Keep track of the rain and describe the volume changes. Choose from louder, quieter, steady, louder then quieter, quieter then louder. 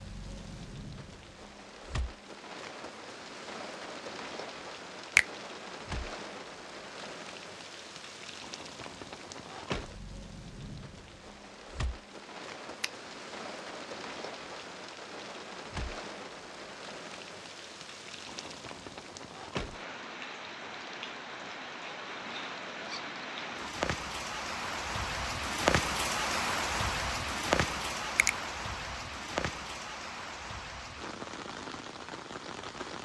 louder.